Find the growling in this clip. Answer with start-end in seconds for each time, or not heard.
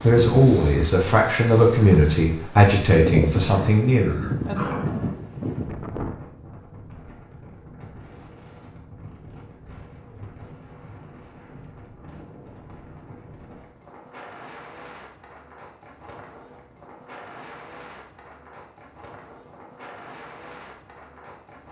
3.5-5.2.